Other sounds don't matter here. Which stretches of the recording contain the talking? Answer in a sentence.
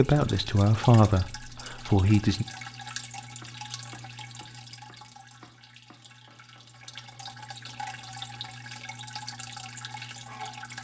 The talking can be heard from 0.0 to 2.5 s.